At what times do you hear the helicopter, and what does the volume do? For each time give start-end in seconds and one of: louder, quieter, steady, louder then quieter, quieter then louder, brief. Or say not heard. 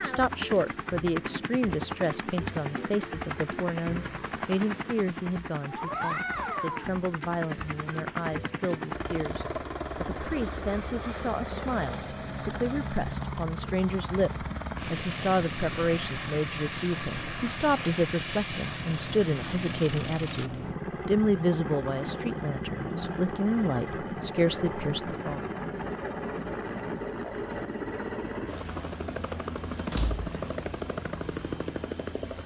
0.0-32.4 steady.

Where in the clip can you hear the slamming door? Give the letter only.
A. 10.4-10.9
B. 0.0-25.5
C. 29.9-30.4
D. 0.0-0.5
C.